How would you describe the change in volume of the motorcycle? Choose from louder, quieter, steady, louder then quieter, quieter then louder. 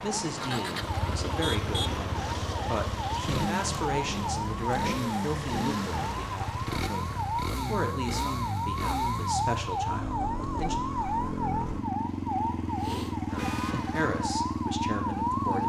steady.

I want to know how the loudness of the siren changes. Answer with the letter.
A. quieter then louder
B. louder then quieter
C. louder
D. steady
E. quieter
D.